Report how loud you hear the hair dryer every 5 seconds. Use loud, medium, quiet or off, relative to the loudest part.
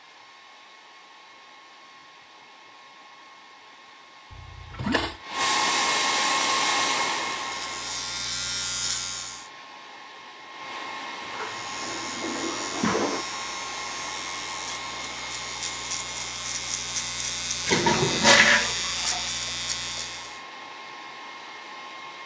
quiet, loud, medium, quiet, quiet.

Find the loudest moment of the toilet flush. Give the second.
18 s.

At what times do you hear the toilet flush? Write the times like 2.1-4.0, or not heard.
4.3-5.2, 11.2-13.2, 17.6-19.3.